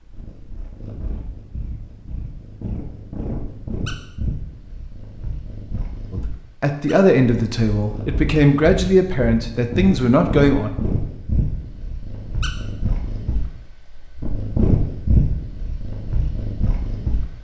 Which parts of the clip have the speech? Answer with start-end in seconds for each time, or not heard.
6.1-10.7.